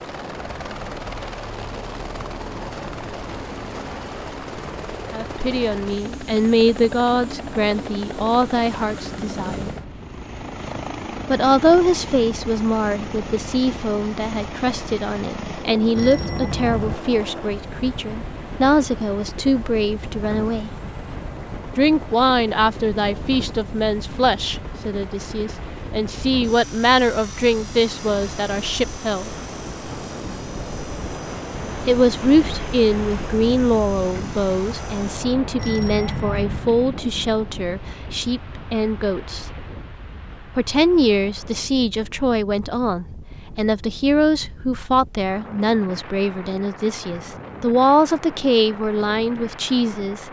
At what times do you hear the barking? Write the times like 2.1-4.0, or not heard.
not heard.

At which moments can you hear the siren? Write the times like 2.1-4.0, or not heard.
not heard.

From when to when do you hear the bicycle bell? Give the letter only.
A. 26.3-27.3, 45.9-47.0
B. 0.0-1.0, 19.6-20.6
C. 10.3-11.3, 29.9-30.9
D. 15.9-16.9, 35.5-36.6
D.